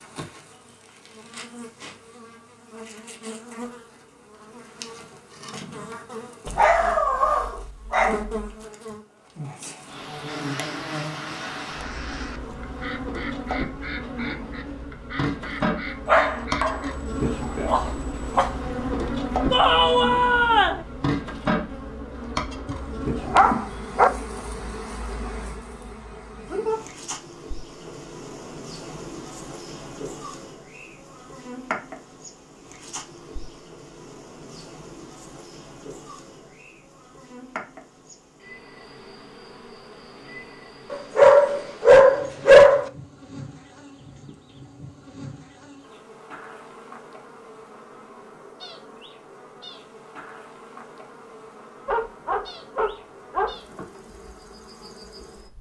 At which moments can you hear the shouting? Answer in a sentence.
You can hear the shouting from 19.5 to 20.9 s.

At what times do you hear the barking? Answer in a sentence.
The barking can be heard from 6.5 to 8.3 s, from 16.1 to 16.8 s, from 17.6 to 18.5 s, from 22.7 to 24.1 s, from 40.9 to 42.9 s and from 51.9 to 53.9 s.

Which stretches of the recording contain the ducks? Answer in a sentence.
You can hear the ducks from 10.2 to 16.9 s.